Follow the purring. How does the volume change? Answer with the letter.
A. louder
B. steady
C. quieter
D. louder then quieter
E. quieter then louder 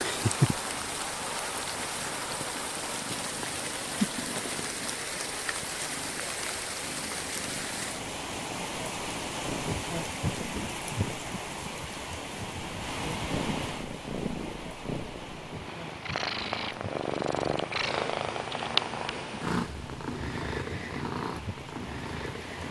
E.